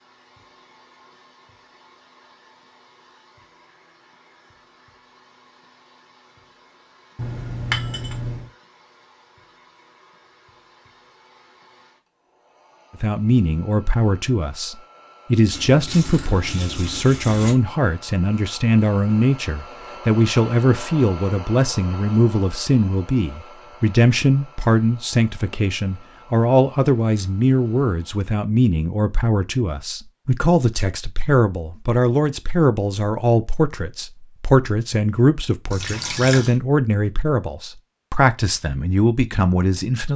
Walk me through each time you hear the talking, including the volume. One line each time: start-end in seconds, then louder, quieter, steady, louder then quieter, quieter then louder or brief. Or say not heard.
13.0-40.1 steady.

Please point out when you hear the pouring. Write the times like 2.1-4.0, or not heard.
7.2-8.4, 15.5-17.6, 35.7-36.5.